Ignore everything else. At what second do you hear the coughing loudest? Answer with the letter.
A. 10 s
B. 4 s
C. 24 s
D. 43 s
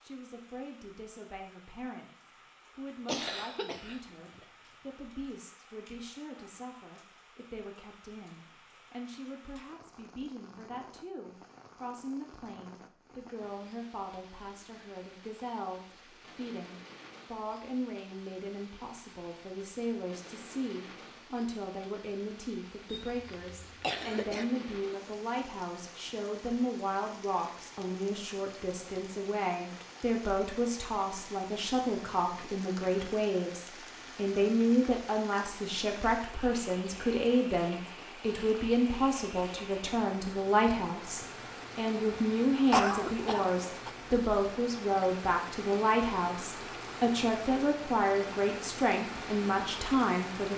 D.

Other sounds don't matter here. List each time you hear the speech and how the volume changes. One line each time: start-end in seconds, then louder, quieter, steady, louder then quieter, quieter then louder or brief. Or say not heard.
0.0-50.5 louder.